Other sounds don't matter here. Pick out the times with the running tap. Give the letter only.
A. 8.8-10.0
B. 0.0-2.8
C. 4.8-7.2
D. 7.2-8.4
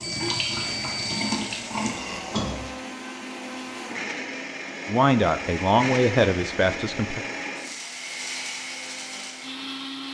B.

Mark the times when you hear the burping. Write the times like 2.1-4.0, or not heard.
1.7-2.4.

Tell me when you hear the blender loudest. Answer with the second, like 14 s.
6 s.